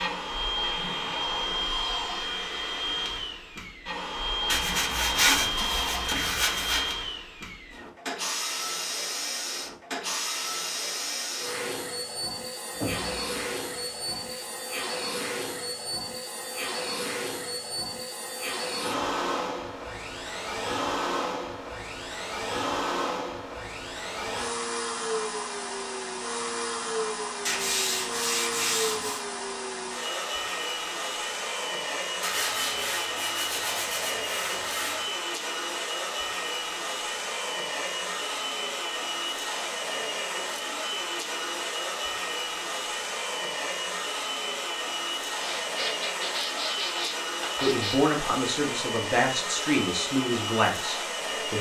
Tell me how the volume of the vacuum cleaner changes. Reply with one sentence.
The volume of the vacuum cleaner stays about the same.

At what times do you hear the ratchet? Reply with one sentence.
The ratchet can't be heard in this clip.